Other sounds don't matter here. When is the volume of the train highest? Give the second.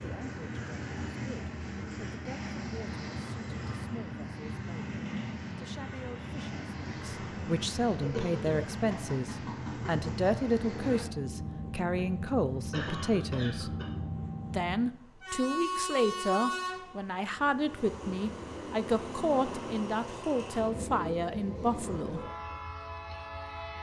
16 s.